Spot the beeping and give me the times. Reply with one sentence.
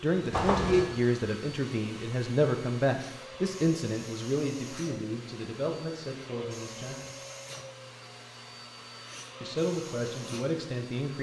You can hear the beeping from 0.3 to 0.9 s.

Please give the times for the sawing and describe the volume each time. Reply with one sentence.
The sawing can't be heard in this clip.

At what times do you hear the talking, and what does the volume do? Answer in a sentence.
The talking can be heard from 0.0 to 7.2 s, getting quieter; and briefly from 9.4 to 11.1 s.